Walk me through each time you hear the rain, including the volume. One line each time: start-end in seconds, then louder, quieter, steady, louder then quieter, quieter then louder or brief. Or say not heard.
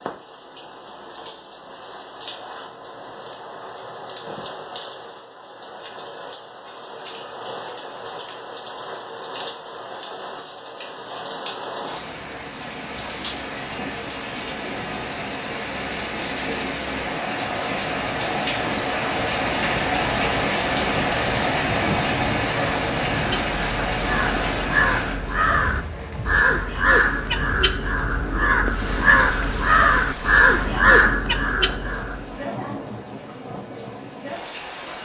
0.0-35.0 louder then quieter.